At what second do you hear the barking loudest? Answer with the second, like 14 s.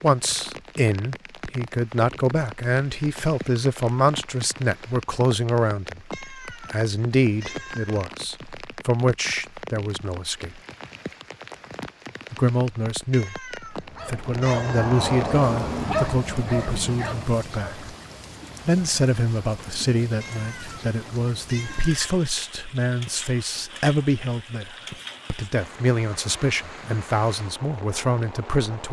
16 s.